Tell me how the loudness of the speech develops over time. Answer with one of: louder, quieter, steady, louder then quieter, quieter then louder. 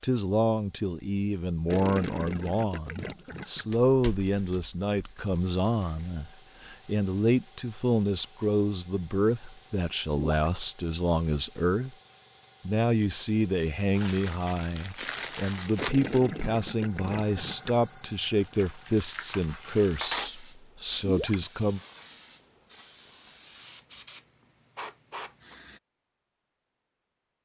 steady.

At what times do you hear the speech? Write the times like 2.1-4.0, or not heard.
0.0-11.9, 12.7-21.8.